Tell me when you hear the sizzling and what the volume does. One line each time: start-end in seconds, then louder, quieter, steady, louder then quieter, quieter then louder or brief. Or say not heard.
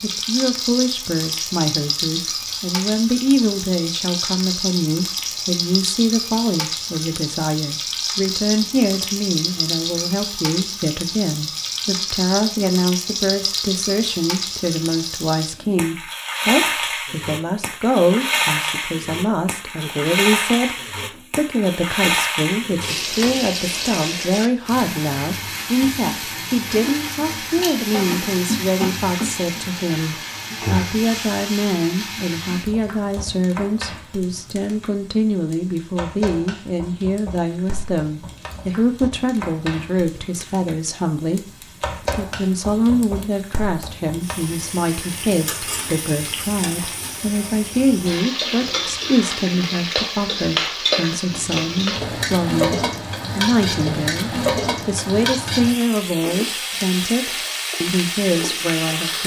0.0-59.2 quieter then louder.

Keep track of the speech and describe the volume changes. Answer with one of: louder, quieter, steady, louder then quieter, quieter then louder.
steady.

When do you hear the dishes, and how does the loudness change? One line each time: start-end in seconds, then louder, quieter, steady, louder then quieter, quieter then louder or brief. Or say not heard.
not heard.